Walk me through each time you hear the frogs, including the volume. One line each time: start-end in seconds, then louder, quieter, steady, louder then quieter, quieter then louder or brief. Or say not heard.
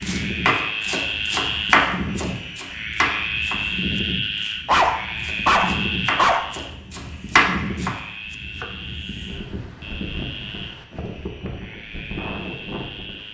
0.0-13.3 quieter.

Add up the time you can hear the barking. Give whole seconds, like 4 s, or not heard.
2 s.